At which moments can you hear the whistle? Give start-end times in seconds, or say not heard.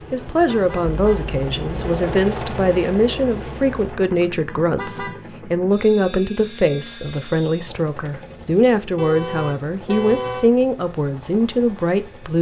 not heard.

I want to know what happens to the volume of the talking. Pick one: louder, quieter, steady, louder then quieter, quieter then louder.
steady.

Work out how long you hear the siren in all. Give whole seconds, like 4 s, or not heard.
not heard.